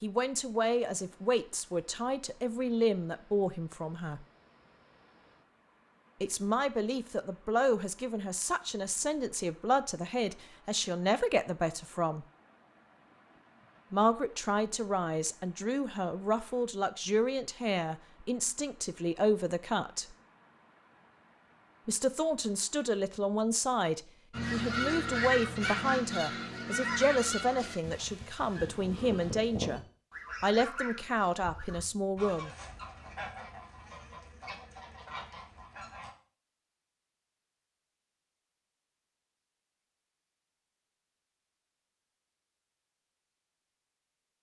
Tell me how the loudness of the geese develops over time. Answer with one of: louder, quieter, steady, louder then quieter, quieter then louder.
quieter.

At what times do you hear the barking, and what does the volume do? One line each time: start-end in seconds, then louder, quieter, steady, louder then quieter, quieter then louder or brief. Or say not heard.
not heard.